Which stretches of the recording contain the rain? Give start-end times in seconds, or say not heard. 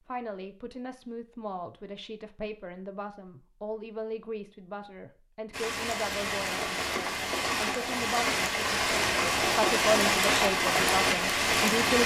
5.5-12.0.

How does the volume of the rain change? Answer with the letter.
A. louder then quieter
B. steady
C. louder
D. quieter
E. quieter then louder
C.